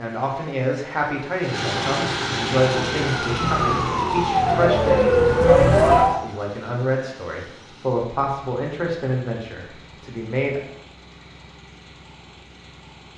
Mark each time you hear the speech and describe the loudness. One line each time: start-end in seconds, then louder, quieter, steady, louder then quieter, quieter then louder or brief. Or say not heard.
0.0-10.6 steady.